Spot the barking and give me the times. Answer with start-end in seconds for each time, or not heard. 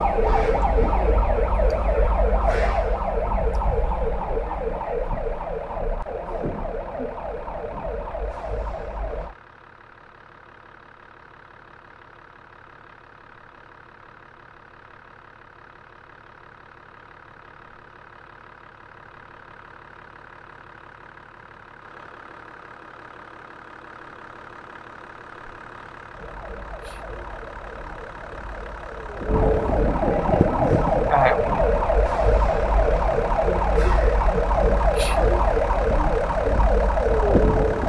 not heard.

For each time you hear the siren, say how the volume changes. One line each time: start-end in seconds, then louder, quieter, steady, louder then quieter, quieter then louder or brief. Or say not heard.
0.0-9.3 quieter
26.1-37.8 louder.